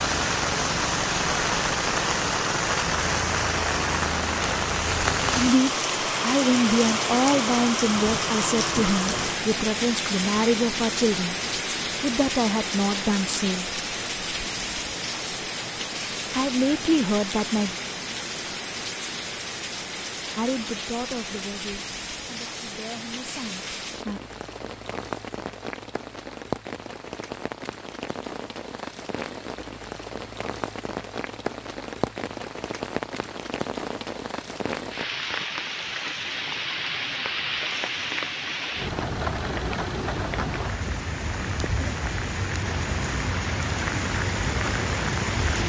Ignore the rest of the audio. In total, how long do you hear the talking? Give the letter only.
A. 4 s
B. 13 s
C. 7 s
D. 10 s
B.